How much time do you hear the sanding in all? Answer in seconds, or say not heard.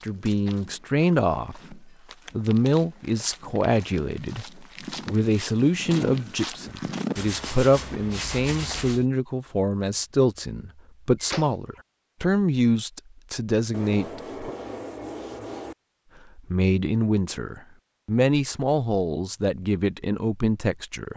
4 s.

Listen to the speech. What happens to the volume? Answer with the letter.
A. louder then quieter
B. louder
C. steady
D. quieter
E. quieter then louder
C.